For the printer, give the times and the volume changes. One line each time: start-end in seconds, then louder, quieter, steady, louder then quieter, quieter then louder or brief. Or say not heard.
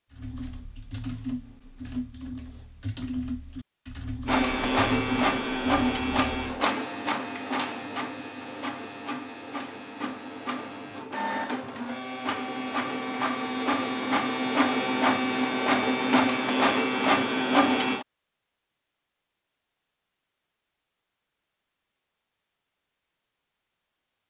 4.2-18.1 quieter then louder.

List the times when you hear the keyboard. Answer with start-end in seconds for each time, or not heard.
0.1-6.6.